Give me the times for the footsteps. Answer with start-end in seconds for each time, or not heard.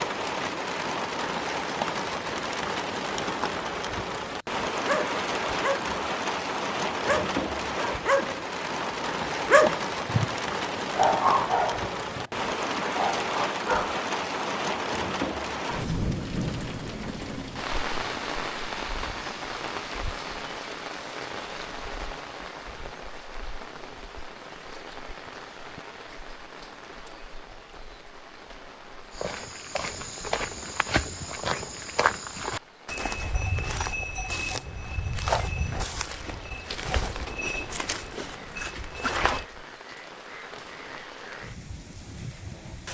29.1-39.5.